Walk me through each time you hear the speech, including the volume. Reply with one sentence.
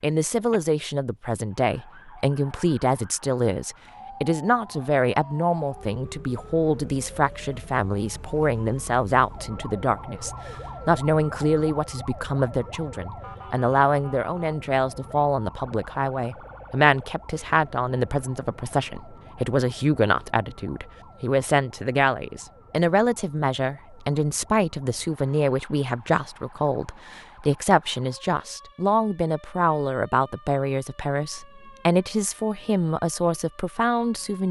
The speech can be heard from 0.0 to 34.4 s, at a steady volume.